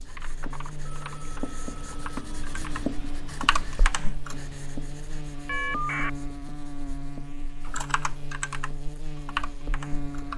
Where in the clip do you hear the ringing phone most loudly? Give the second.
6 s.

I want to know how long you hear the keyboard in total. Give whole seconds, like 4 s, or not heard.
7 s.